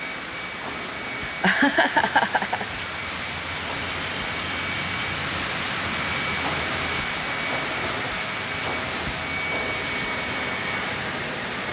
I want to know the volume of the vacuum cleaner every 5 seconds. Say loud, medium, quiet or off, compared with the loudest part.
medium, loud, loud.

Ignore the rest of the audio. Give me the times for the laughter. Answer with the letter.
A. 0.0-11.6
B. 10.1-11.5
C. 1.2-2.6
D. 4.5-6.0
C.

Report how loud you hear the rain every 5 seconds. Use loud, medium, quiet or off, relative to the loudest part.
loud, loud, medium.